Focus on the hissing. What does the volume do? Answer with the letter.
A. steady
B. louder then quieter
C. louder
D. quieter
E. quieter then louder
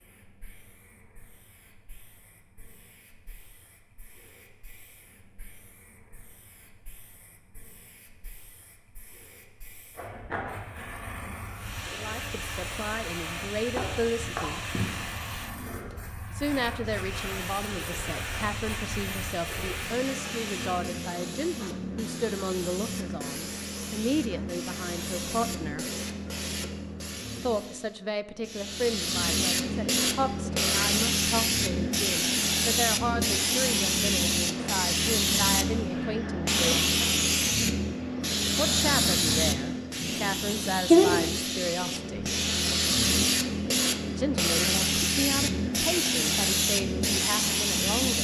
C.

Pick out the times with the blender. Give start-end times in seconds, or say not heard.
11.6-21.0.